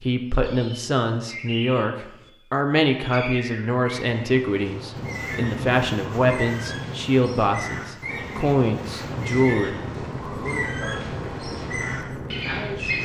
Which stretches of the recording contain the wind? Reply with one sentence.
The wind can be heard from 5.0 to 12.9 s.